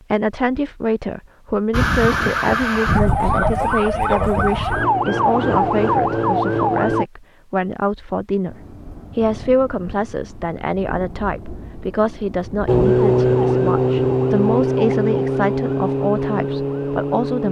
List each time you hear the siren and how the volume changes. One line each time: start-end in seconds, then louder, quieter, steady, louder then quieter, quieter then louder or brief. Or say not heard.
1.7-7.0 steady
12.7-17.4 quieter.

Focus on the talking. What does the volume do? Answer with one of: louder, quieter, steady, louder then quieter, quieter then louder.
steady.